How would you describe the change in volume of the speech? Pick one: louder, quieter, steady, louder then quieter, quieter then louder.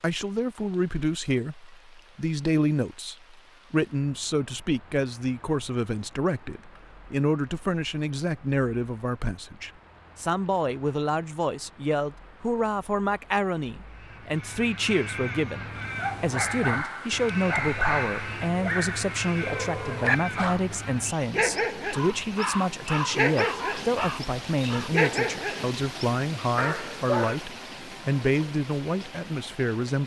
steady.